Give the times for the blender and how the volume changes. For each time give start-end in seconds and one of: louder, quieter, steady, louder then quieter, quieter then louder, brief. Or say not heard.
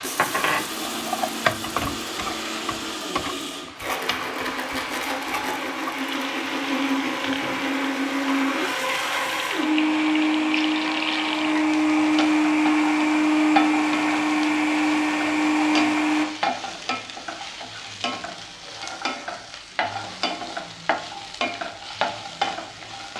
0.0-16.2 louder.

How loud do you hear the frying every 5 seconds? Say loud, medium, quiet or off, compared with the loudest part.
loud, medium, loud, loud, loud.